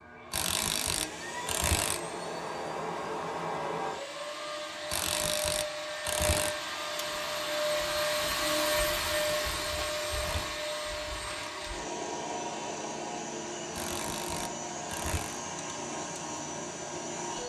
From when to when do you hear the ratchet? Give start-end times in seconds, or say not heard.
0.3-2.0, 4.8-6.5, 8.9-10.5, 13.7-15.4.